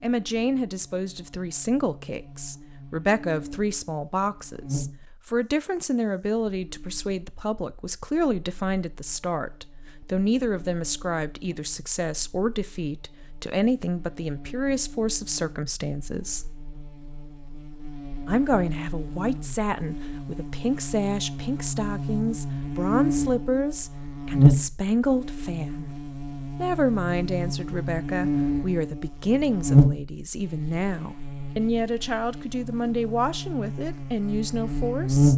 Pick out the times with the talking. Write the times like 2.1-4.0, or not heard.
0.0-16.5, 18.2-25.9, 26.6-35.3.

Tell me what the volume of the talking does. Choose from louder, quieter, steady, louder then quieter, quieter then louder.
steady.